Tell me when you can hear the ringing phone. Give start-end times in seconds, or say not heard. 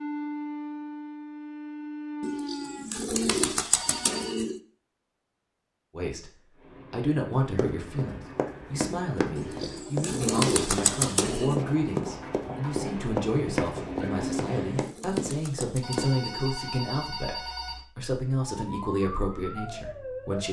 3.7-4.4, 15.8-17.9.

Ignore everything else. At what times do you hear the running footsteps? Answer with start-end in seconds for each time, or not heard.
7.3-16.1.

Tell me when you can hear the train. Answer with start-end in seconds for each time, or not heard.
6.5-14.9.